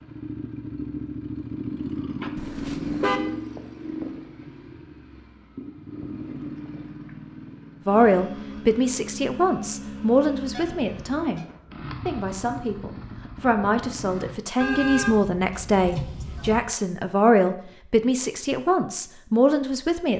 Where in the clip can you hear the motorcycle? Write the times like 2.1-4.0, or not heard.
0.0-14.3.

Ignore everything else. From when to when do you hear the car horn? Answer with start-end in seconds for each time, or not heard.
2.4-3.2, 10.5-11.4, 14.6-16.6.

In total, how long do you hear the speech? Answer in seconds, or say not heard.
12 s.